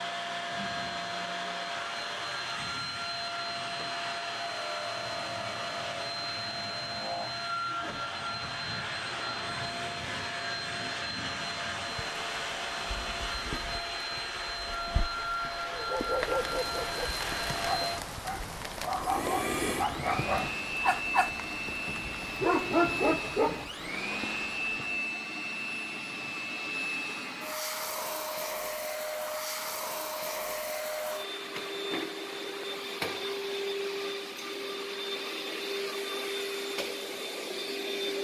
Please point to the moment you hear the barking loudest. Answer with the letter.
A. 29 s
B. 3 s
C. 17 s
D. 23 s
D.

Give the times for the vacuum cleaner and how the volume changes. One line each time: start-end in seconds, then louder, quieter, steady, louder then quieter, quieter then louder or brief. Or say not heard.
0.0-38.2 steady.